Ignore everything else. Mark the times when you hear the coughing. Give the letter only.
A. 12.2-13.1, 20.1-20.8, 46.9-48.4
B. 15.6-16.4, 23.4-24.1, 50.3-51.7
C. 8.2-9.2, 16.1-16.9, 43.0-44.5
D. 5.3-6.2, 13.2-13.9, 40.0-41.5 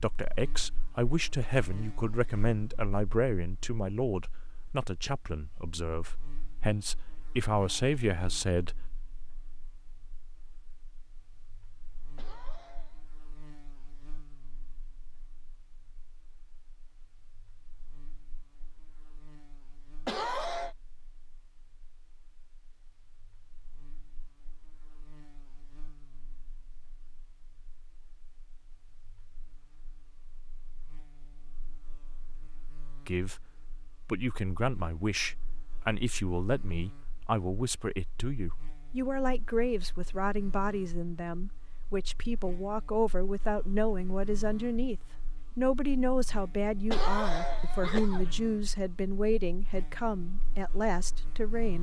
A.